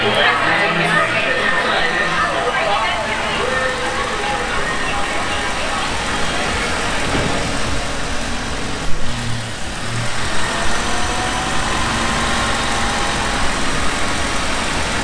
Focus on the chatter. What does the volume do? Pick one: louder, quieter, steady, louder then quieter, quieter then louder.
quieter.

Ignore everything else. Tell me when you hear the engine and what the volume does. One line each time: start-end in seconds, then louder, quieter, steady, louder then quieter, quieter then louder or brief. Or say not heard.
0.0-15.0 louder.